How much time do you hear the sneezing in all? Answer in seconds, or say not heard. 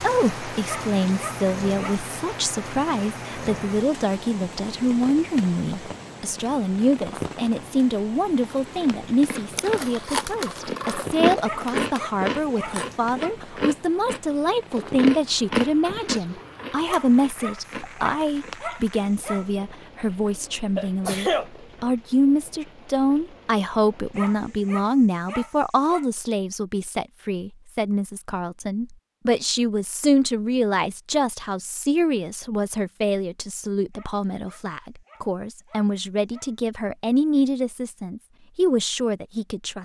2 s.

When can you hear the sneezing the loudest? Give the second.
21 s.